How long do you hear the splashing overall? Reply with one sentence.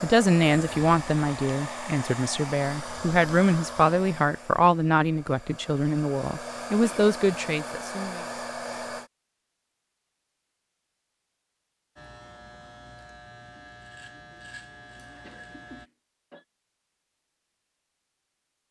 You can't hear the splashing here.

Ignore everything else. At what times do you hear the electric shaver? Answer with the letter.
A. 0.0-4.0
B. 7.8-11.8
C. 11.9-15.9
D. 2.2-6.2
C.